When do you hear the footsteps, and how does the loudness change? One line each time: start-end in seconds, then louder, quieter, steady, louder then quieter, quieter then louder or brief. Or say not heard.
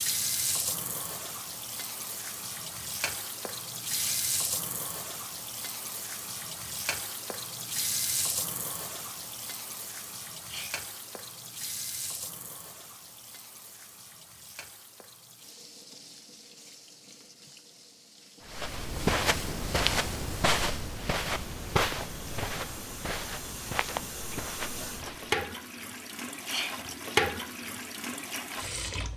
18.4-25.4 quieter.